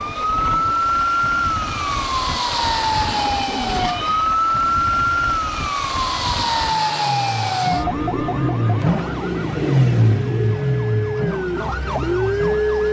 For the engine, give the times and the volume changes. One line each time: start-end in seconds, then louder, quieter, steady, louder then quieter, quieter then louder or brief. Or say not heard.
0.0-12.8 louder.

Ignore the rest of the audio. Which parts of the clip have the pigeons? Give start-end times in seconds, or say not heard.
2.6-4.3, 7.8-10.6.